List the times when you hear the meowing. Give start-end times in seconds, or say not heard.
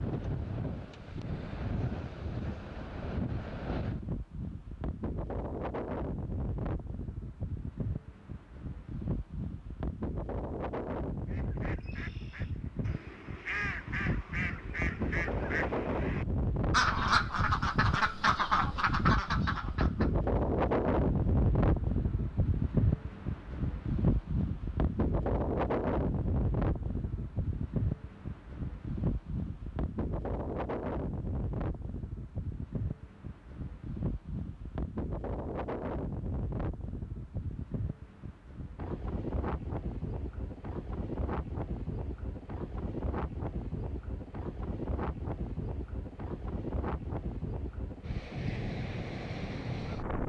not heard.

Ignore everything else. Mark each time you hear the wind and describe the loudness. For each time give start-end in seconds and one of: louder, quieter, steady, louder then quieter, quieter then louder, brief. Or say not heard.
0.0-50.2 louder then quieter.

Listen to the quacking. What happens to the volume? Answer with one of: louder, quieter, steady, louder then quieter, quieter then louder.
louder.